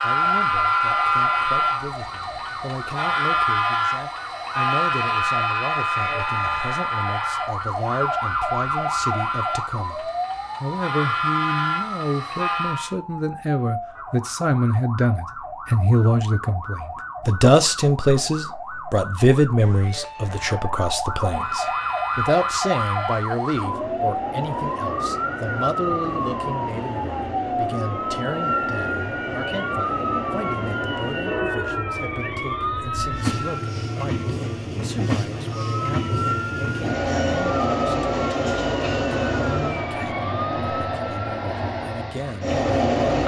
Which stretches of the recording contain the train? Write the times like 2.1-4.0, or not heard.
0.0-12.9, 21.1-43.2.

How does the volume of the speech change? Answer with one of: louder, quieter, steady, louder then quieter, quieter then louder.
louder then quieter.